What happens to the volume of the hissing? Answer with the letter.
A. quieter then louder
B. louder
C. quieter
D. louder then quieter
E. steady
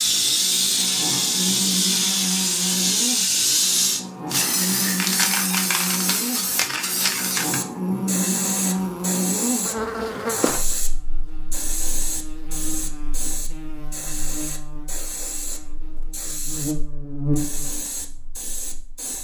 C.